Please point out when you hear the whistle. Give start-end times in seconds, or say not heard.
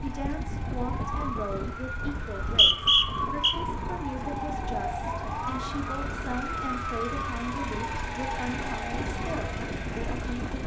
2.1-3.5.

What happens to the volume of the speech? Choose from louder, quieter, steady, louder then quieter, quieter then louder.
steady.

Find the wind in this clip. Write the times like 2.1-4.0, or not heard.
0.0-10.6.